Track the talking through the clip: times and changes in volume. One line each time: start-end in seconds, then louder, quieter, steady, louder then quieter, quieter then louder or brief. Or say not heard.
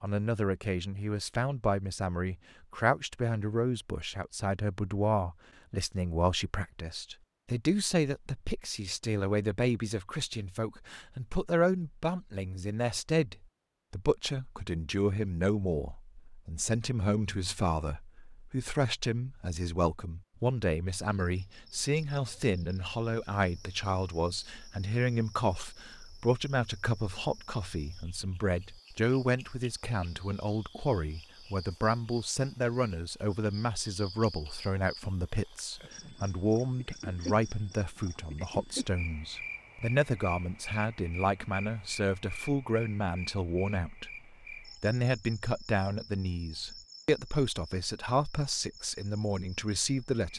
0.0-50.3 steady.